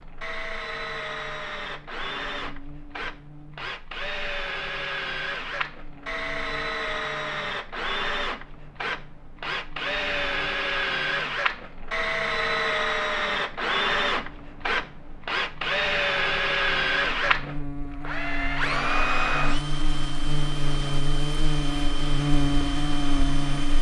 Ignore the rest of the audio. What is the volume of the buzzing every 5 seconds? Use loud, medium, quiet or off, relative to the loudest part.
quiet, quiet, quiet, medium, loud.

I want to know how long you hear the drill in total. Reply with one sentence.
The drill can be heard for 24 seconds in total.